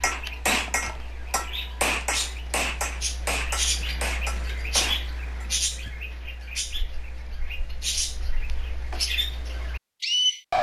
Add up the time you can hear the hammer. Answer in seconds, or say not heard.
6 s.